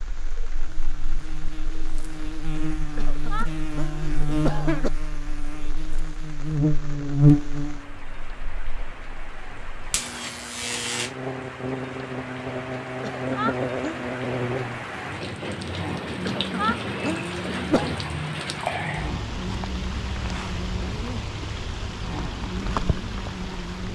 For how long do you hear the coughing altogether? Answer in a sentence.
You can hear the coughing for 5 seconds altogether.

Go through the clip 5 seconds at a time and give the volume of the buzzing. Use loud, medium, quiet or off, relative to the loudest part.
medium, loud, medium, medium, quiet.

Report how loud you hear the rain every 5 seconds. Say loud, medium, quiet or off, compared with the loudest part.
quiet, quiet, medium, loud, loud.